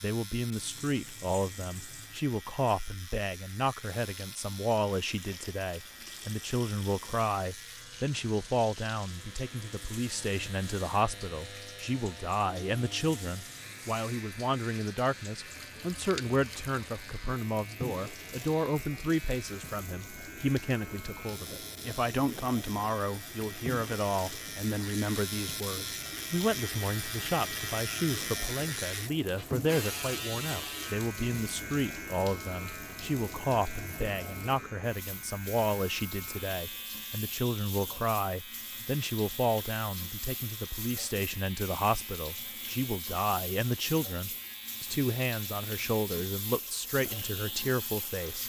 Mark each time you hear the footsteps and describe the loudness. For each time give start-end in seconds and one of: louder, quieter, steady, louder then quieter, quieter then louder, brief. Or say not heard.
not heard.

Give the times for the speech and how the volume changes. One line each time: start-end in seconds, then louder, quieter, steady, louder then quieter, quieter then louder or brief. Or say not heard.
0.0-48.4 steady.